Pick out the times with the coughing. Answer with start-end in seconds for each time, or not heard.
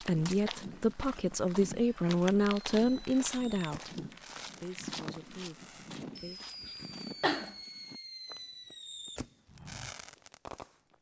6.6-7.5.